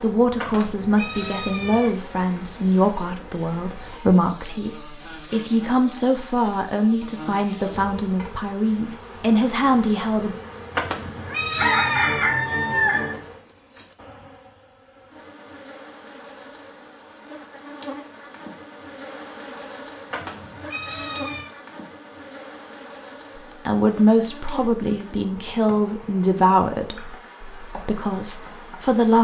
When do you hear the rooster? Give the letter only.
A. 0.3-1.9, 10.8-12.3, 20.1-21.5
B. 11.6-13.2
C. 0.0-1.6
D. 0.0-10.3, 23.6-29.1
B.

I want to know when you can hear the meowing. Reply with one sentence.
You can hear the meowing from 0.3 to 1.9 s, from 10.8 to 12.3 s and from 20.1 to 21.5 s.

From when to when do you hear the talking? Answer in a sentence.
You can hear the talking from 0.0 to 10.3 s and from 23.6 to 29.1 s.